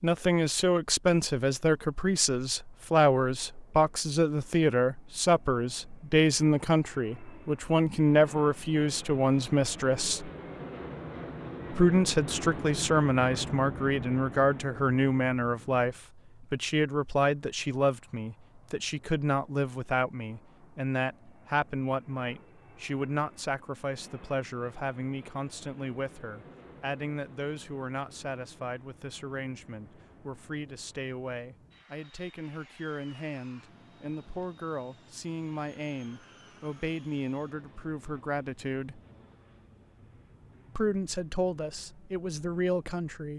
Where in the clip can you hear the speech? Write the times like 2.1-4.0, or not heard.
0.0-10.3, 11.7-39.0, 40.8-43.3.